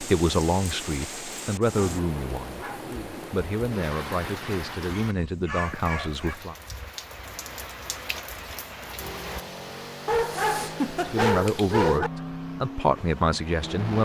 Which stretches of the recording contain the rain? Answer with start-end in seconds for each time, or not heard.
0.0-9.4.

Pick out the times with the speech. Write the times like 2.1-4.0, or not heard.
0.0-6.5, 11.1-13.9.